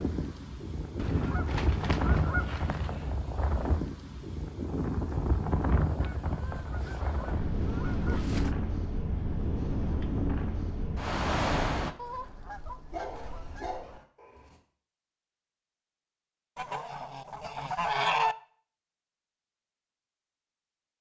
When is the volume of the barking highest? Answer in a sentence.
The loudest moment of the barking is at 13 seconds.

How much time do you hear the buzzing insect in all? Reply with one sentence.
The buzzing insect can't be heard in this clip.